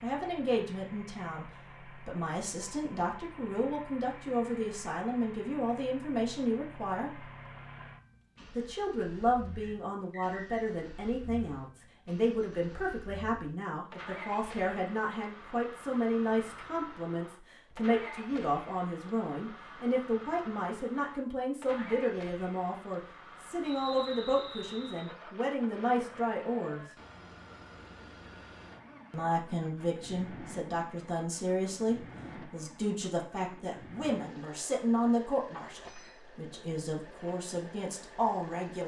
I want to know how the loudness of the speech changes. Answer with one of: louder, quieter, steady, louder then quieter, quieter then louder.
steady.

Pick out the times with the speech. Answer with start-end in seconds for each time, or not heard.
0.0-7.2, 8.6-26.9, 29.1-38.8.